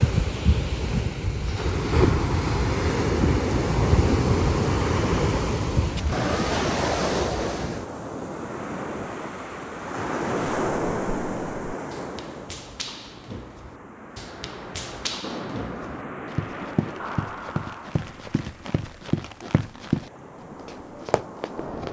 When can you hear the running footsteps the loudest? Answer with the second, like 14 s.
20 s.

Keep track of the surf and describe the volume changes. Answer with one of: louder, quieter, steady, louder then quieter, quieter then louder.
quieter.